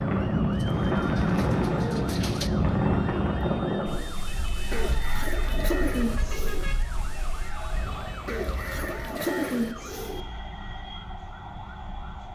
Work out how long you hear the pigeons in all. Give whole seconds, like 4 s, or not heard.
6 s.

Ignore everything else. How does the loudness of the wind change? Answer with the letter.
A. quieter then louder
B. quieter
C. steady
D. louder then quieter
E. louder
B.